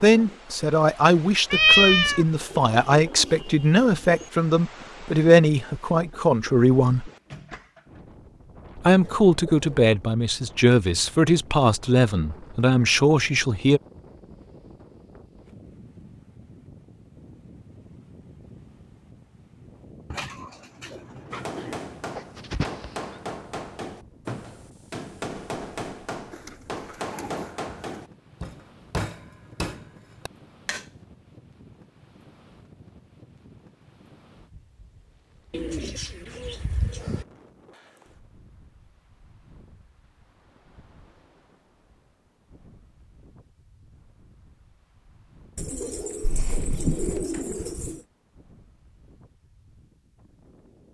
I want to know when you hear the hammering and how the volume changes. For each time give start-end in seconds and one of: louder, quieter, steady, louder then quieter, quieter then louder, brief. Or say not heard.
21.3-30.9 steady.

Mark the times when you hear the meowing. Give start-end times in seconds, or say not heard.
1.5-2.2, 22.1-22.9, 46.2-47.2.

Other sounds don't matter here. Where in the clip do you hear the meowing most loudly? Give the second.
2 s.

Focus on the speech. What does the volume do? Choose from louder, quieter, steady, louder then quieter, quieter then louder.
steady.